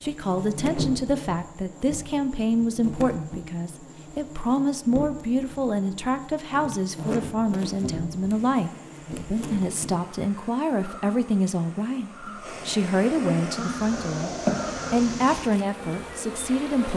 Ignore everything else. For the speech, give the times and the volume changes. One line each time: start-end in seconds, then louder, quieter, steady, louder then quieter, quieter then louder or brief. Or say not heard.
0.0-14.3 steady
14.9-16.9 brief.